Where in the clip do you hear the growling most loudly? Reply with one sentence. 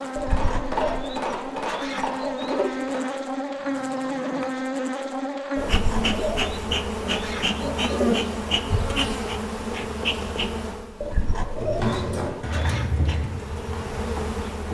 The volume of the growling peaks at 12 seconds.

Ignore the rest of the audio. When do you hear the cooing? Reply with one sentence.
You can hear the cooing from 0.1 to 2.9 s, from 5.5 to 8.2 s and from 11.0 to 12.9 s.